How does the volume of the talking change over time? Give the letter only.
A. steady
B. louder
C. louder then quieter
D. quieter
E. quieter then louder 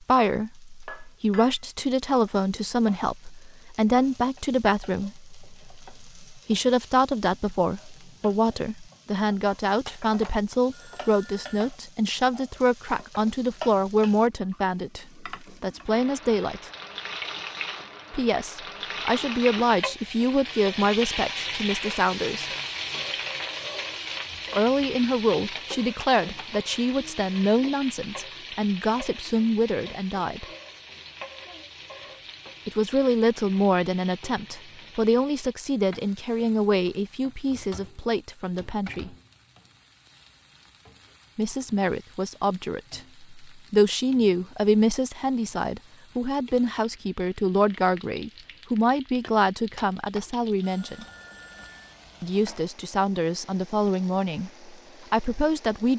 A.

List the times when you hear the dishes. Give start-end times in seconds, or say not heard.
not heard.